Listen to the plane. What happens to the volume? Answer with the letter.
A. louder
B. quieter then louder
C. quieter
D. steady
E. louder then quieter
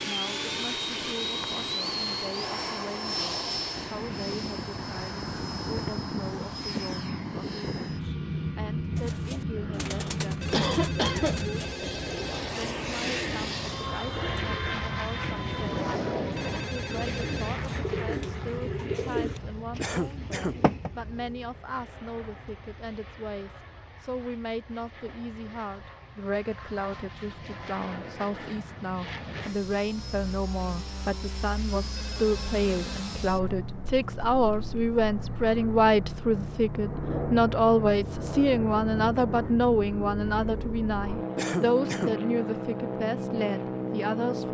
B.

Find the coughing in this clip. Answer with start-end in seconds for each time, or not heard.
9.6-11.4, 19.8-20.6, 41.4-42.1.